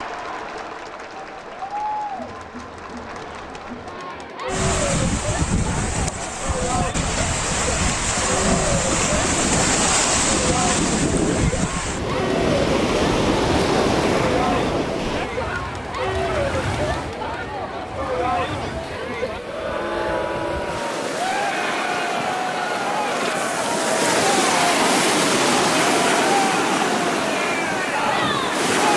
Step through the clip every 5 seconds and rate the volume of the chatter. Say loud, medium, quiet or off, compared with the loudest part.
medium, medium, loud, loud, loud, loud.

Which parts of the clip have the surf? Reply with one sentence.
The surf can be heard from 4.5 to 28.9 s.